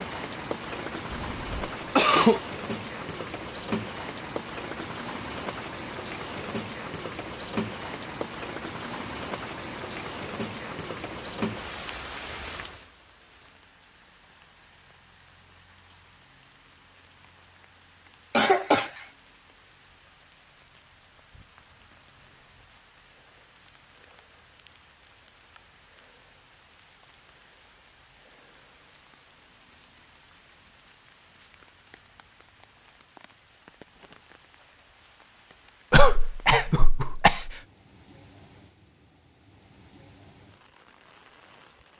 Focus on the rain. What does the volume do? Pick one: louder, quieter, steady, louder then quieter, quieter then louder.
quieter.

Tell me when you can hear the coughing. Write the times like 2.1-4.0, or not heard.
1.1-2.4, 18.4-18.9, 35.9-37.5.